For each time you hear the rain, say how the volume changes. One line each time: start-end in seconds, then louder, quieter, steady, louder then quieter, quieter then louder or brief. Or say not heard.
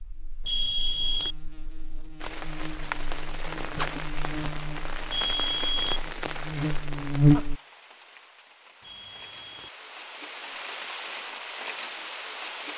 2.2-12.7 quieter then louder.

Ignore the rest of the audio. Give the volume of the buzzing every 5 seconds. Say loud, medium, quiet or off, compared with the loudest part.
quiet, loud, off.